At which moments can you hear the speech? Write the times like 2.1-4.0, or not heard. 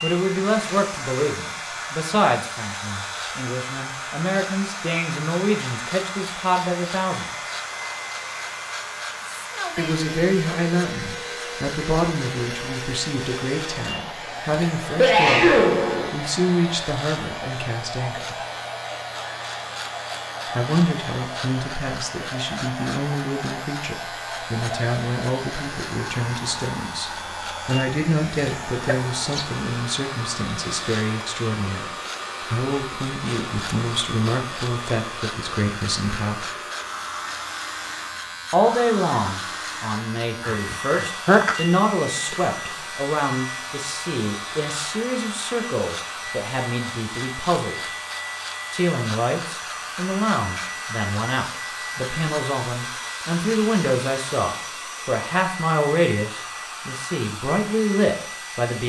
0.0-7.5, 9.8-18.4, 20.6-36.5, 38.5-47.8, 48.7-58.8.